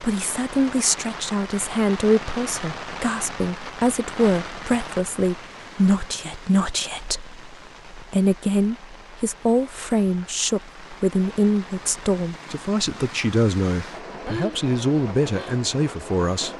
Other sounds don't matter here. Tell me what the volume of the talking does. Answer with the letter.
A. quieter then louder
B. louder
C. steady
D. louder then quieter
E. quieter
C.